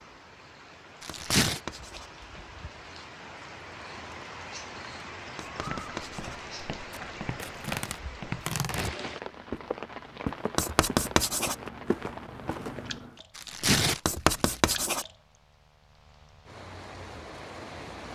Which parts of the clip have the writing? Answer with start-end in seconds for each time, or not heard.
1.1-2.1, 5.3-6.4, 10.6-11.6, 14.1-15.1.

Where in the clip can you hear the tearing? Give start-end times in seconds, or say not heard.
1.0-1.6, 6.9-8.9, 13.3-14.6.